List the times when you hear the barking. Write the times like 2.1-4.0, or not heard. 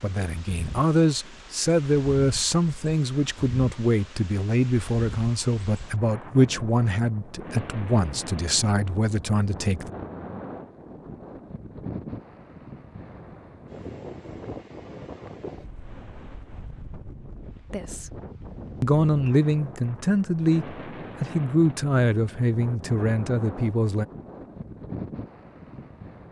not heard.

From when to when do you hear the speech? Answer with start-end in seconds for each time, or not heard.
0.0-9.9, 17.7-18.1, 18.8-24.1.